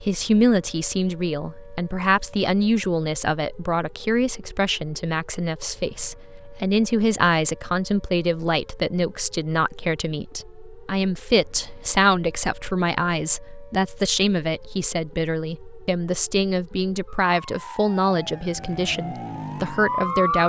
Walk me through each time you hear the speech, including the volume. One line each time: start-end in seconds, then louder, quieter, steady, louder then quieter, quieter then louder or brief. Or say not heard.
0.0-20.4 steady.